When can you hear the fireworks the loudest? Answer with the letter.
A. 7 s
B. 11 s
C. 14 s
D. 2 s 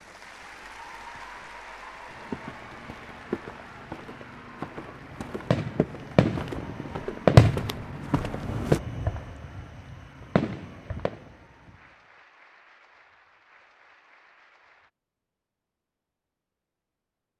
A.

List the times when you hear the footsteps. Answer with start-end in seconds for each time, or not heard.
2.1-8.8.